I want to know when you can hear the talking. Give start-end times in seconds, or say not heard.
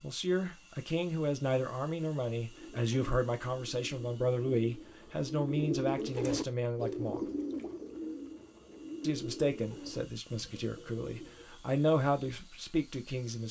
0.0-7.2, 9.0-13.4.